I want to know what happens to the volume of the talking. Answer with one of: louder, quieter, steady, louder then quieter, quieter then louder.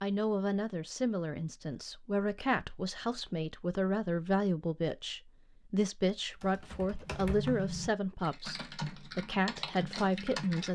steady.